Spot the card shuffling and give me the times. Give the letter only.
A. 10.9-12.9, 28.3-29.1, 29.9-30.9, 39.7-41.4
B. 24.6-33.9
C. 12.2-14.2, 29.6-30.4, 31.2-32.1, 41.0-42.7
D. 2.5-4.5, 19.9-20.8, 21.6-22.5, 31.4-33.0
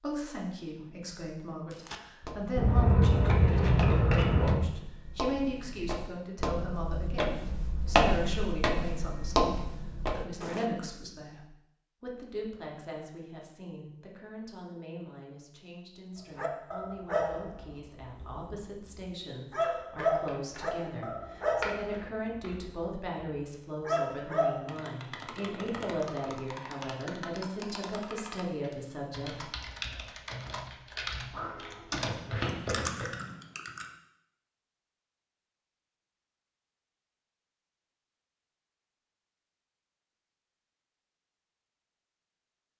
D.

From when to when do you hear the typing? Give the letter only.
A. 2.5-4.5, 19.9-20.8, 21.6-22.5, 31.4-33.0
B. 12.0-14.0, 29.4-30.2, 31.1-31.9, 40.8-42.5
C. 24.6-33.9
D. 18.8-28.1
C.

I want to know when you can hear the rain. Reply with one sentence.
The rain can't be heard in this clip.